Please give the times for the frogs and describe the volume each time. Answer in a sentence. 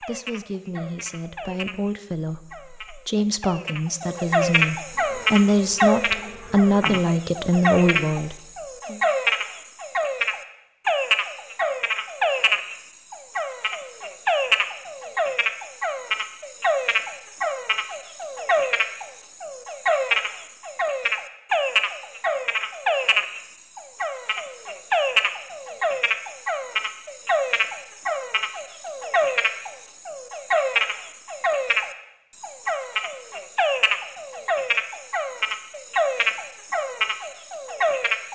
The frogs can be heard from 0.0 to 38.3 s, at a steady volume.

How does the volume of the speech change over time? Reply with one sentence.
The loudness of the speech goes up.